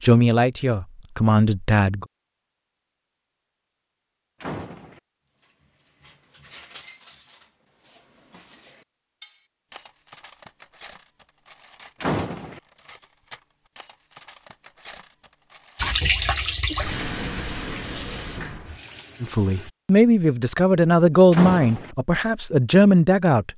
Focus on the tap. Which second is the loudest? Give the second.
16 s.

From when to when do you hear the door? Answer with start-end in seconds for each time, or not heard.
4.4-5.0, 12.0-12.6, 21.3-21.9.